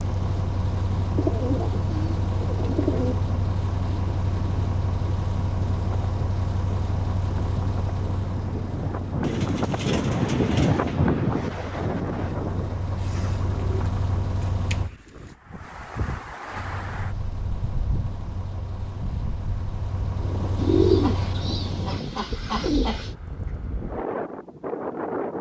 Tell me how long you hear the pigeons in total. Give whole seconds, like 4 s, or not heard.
9 s.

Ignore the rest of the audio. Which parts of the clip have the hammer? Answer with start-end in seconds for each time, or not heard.
not heard.